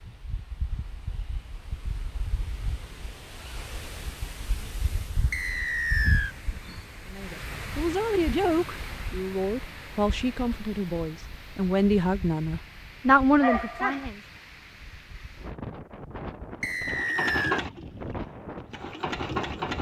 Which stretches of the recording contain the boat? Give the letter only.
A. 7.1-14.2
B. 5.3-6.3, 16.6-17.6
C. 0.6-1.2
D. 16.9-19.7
D.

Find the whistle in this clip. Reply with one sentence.
You can hear the whistle from 5.3 to 6.3 s and from 16.6 to 17.6 s.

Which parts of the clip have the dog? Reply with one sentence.
The dog can be heard from 13.4 to 14.1 s.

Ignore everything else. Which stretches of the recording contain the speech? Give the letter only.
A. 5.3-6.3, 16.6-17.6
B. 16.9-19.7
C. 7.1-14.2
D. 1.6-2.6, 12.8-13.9
C.